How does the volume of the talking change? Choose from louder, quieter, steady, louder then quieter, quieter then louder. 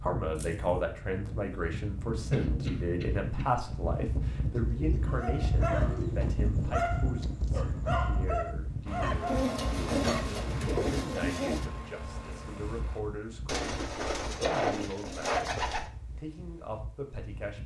quieter.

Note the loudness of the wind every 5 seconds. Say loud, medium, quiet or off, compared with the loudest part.
loud, loud, medium, quiet.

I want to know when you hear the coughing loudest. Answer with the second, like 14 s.
15 s.